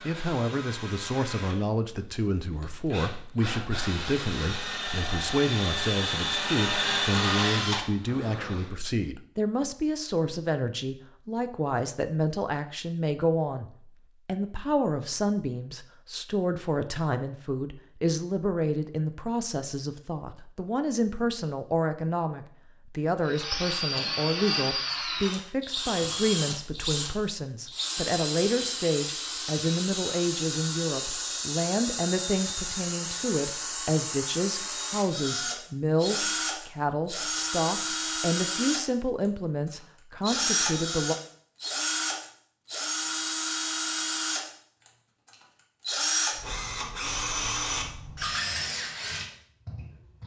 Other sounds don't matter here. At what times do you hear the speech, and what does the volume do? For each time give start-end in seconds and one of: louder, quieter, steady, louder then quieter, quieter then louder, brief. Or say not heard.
0.1-41.1 steady.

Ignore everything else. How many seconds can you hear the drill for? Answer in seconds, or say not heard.
36 s.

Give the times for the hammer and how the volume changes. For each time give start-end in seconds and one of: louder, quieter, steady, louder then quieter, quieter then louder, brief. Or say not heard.
not heard.